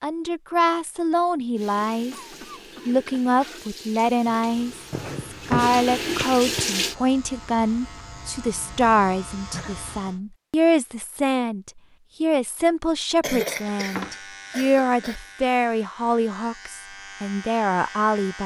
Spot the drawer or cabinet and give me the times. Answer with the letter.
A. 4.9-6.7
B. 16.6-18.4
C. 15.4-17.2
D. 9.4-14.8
A.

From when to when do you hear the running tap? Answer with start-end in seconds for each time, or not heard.
1.6-7.0.